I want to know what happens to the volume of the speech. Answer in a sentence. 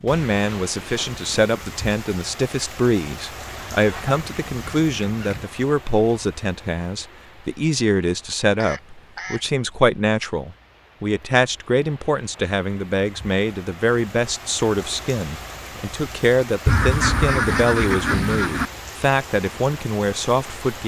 The volume of the speech stays about the same.